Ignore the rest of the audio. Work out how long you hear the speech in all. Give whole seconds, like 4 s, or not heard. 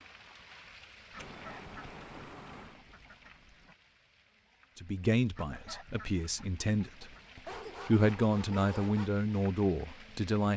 5 s.